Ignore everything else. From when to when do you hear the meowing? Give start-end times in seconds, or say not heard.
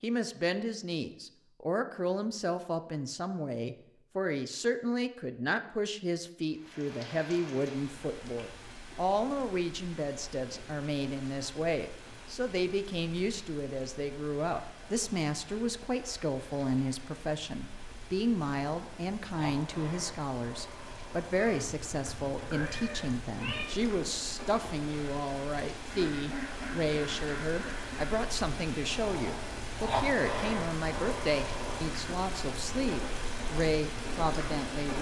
21.4-23.6.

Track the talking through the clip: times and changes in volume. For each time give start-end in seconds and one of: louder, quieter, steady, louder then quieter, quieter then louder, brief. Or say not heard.
0.0-34.9 steady.